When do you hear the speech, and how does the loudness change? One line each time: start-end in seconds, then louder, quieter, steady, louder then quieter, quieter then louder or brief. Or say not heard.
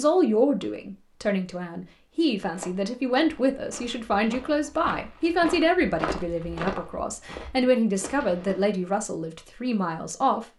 0.0-10.4 steady.